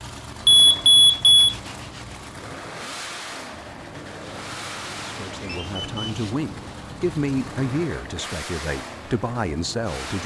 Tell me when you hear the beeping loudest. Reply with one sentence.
The loudest moment of the beeping is at 1 second.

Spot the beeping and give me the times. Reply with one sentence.
The beeping can be heard from 0.5 to 1.4 s and from 5.4 to 6.2 s.